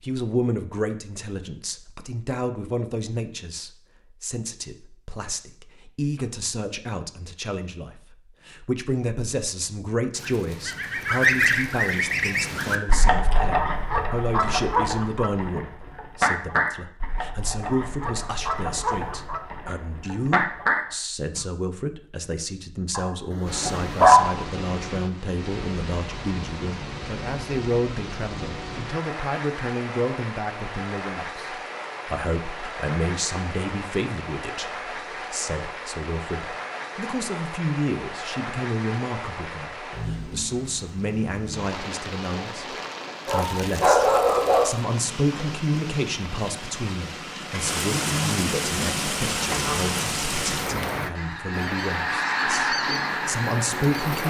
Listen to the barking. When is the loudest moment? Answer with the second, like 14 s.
24 s.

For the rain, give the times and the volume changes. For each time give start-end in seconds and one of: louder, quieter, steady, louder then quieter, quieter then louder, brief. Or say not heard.
23.4-54.2 louder.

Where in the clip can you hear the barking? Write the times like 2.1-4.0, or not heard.
22.9-24.4, 43.2-44.8.